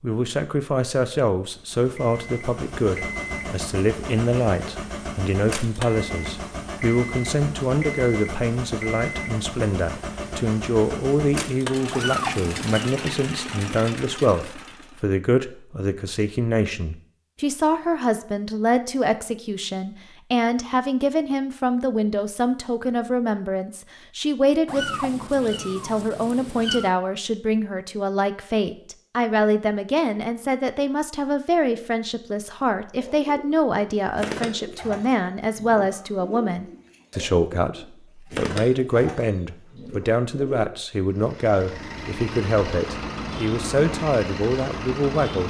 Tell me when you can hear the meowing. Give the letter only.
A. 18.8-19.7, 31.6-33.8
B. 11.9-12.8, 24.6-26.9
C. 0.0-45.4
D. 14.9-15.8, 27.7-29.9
B.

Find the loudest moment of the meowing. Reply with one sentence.
The volume of the meowing peaks at 12 seconds.